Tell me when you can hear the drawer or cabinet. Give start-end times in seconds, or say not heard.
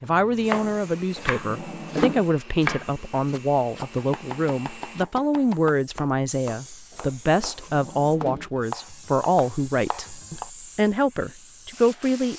0.7-2.2, 6.9-8.5.